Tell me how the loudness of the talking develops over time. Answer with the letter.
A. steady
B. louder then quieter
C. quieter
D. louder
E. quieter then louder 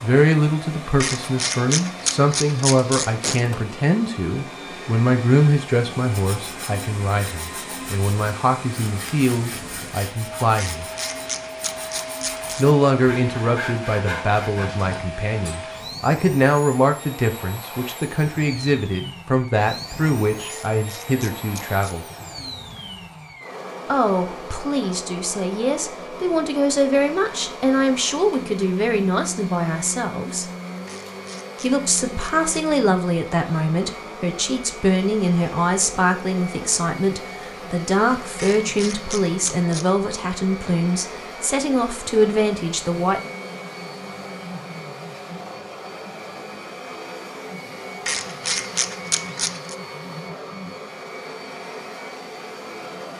A.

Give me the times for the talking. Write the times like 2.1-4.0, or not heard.
0.0-10.8, 12.6-22.1, 23.9-30.5, 31.6-43.3.